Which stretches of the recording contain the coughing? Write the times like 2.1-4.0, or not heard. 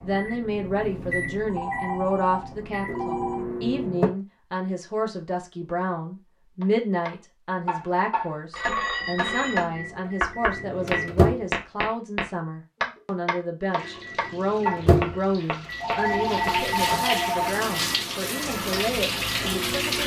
not heard.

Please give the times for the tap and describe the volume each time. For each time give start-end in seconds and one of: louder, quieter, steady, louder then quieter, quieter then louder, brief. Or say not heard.
13.7-20.0 louder.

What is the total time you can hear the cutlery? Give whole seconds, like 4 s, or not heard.
not heard.